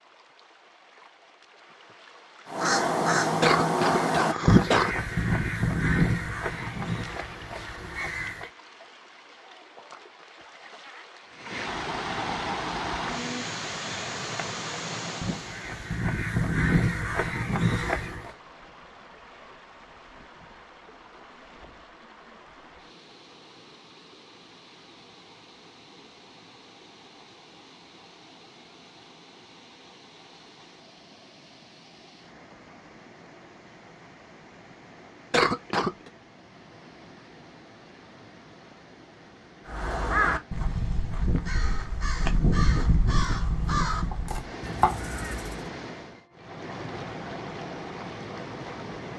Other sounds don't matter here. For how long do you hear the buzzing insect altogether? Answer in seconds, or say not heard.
not heard.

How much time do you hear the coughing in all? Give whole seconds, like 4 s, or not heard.
2 s.